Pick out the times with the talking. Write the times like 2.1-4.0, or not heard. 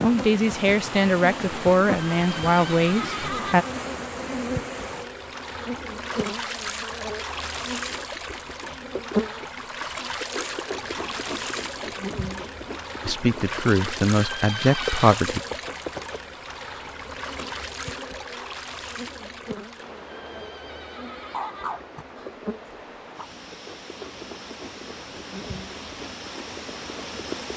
0.0-3.6, 13.1-15.4.